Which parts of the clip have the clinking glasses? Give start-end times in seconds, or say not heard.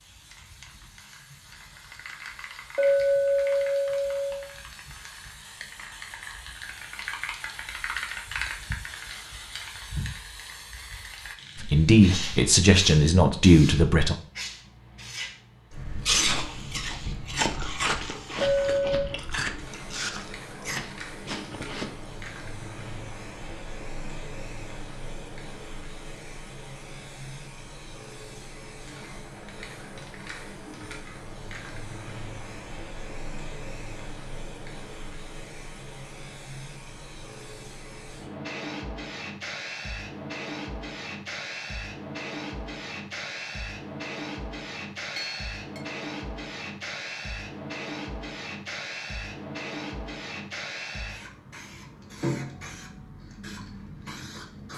2.8-4.5, 18.4-19.1, 45.1-45.8.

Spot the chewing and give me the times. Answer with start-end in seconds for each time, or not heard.
16.0-22.1.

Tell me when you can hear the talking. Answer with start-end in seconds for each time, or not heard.
11.6-14.2.